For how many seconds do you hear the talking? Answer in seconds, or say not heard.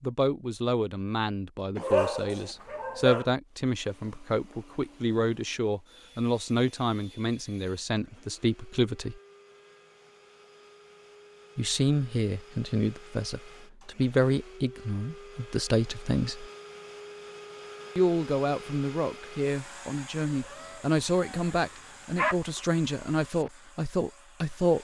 21 s.